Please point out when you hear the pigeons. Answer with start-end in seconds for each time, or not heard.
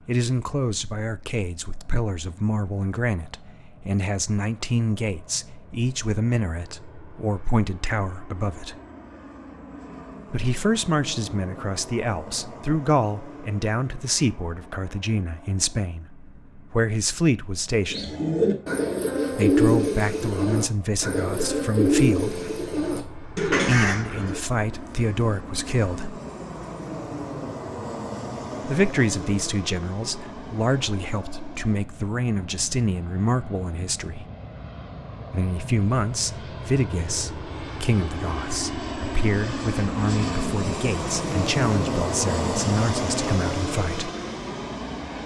17.9-24.4.